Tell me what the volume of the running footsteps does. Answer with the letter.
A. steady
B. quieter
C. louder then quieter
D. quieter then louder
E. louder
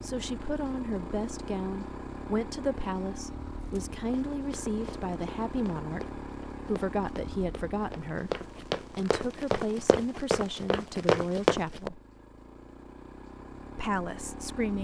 E.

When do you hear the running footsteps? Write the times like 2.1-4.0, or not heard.
3.8-11.9.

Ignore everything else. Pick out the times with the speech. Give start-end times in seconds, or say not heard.
0.0-12.0, 13.8-14.8.